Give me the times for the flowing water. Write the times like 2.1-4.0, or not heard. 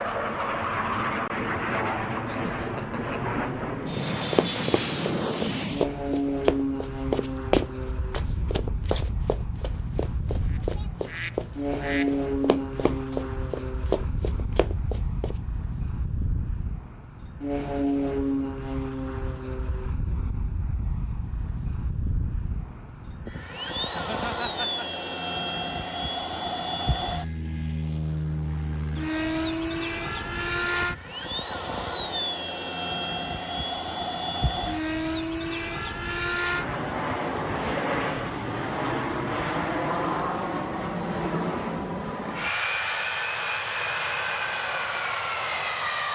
not heard.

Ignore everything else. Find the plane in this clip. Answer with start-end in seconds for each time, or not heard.
0.0-46.0.